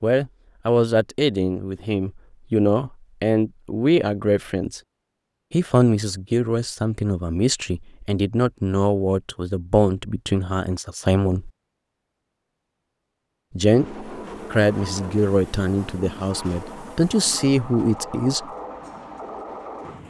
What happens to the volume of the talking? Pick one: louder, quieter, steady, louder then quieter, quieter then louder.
steady.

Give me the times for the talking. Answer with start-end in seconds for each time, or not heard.
0.0-4.8, 5.5-11.5, 13.6-18.4.